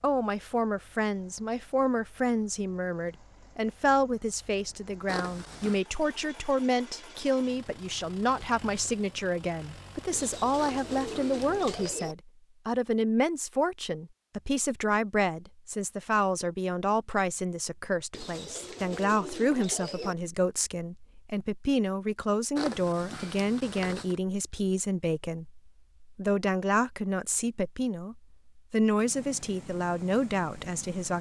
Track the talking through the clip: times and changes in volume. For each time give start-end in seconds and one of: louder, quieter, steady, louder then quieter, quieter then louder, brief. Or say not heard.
0.0-31.1 steady.